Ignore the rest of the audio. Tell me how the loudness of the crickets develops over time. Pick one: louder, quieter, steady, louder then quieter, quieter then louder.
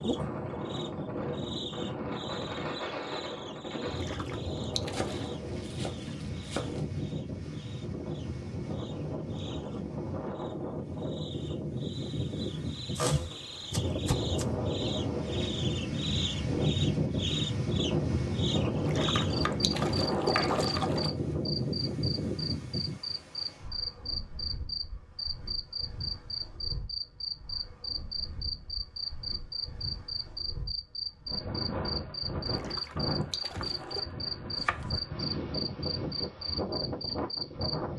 louder.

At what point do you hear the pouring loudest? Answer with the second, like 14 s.
20 s.